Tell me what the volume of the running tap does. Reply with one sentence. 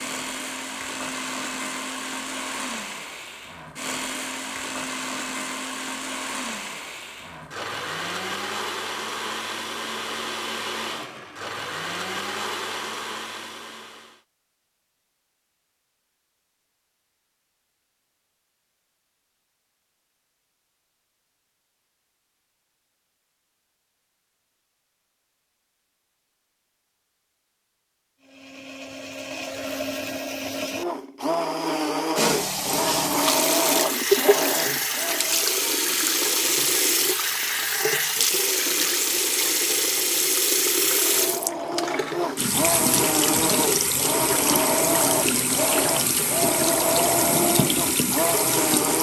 The loudness of the running tap stays about the same.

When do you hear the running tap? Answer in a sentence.
The running tap can be heard from 32.1 to 48.9 s.